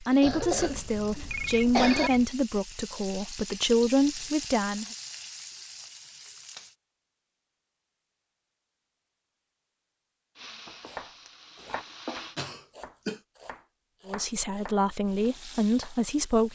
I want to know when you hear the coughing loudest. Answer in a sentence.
The loudest moment of the coughing is at 2 seconds.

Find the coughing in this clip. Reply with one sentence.
You can hear the coughing from 0.1 to 2.1 s and from 12.3 to 13.2 s.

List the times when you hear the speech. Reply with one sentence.
You can hear the speech from 0.0 to 4.8 s and from 14.1 to 16.4 s.